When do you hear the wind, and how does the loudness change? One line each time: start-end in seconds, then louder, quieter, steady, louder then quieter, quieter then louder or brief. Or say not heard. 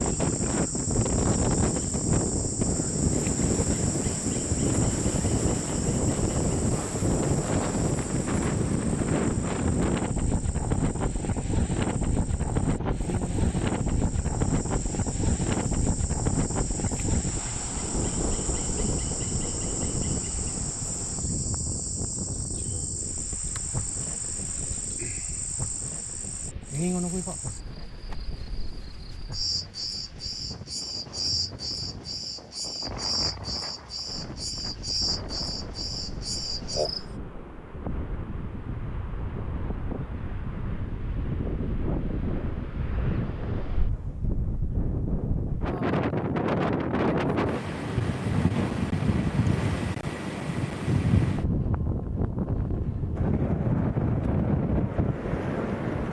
0.0-56.0 quieter then louder.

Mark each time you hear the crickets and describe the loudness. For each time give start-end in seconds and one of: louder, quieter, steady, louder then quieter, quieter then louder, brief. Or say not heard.
0.0-37.0 quieter then louder.